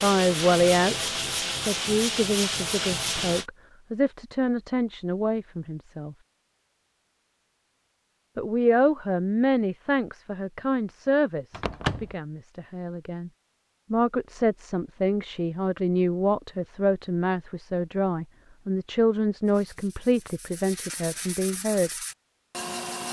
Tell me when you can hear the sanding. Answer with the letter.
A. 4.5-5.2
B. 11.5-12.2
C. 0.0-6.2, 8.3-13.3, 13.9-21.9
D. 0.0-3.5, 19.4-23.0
D.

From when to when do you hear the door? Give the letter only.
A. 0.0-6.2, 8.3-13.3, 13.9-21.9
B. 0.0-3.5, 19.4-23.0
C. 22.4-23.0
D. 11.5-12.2
D.